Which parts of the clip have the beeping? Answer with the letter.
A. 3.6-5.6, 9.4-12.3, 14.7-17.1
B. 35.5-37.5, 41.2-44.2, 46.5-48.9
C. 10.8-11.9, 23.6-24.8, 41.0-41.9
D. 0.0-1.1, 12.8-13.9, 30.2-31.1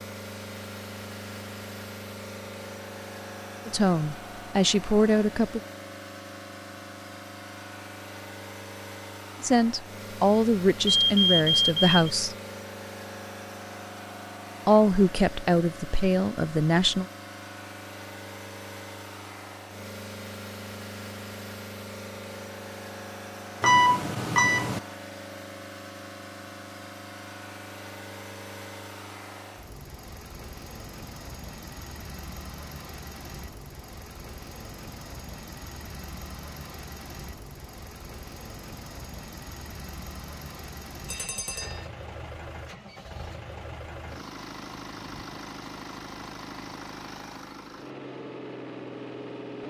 C.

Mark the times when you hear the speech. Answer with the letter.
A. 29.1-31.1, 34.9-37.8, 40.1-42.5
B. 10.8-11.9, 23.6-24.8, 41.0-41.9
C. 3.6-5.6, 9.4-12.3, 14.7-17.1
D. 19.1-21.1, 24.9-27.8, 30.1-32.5
C.